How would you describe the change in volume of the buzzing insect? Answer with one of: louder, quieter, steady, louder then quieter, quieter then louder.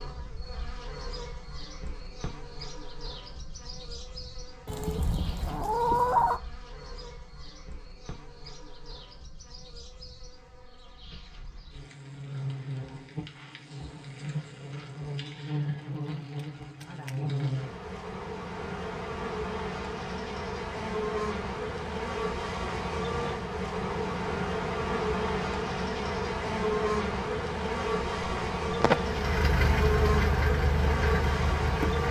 louder.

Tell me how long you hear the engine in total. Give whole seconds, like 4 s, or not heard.
3 s.